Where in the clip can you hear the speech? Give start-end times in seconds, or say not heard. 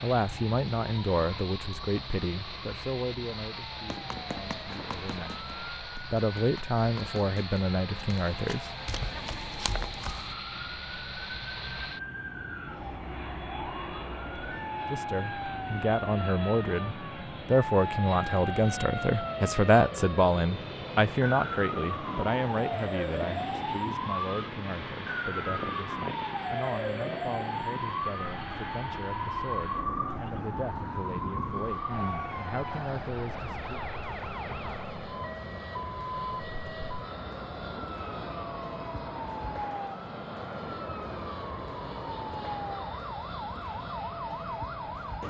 0.0-8.7, 14.9-33.7.